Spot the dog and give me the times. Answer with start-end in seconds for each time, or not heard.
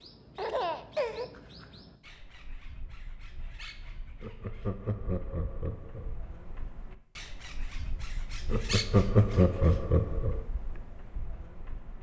not heard.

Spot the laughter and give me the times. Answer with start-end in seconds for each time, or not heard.
0.3-1.3, 4.2-6.1, 8.5-10.4.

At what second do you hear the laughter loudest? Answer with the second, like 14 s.
9 s.